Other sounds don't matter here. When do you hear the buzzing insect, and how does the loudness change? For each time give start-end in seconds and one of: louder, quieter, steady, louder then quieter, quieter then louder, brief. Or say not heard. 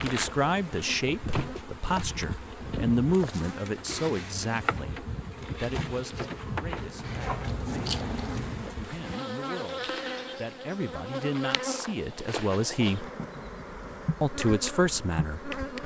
0.0-15.8 steady.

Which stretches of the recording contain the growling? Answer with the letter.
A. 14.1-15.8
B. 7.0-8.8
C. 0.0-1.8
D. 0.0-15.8
B.